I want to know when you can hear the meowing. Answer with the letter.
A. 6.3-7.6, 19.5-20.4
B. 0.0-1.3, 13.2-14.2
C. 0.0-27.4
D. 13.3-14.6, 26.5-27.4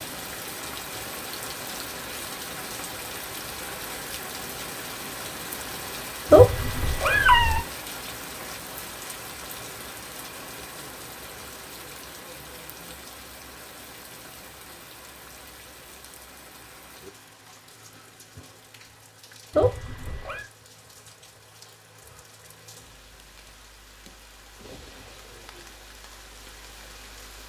A.